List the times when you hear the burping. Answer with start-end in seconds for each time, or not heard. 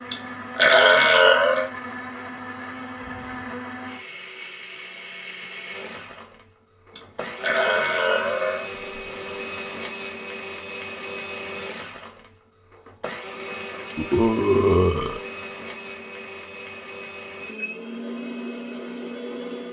0.1-1.7, 7.0-8.7, 13.9-15.2.